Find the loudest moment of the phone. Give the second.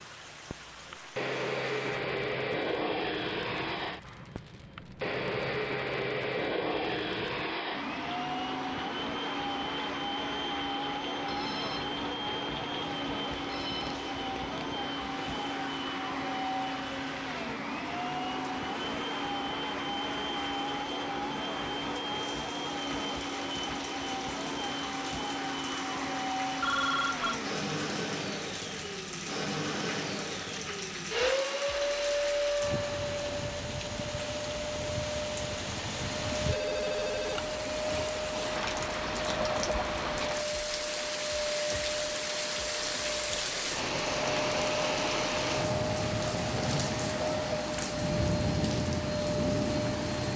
27 s.